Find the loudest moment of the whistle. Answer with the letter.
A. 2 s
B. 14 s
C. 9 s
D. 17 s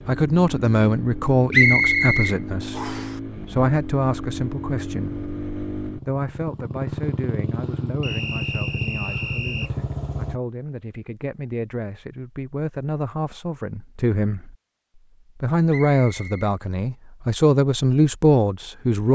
A.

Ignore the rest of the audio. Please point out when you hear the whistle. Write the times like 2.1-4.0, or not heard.
1.5-3.0, 8.0-9.7, 15.7-16.5.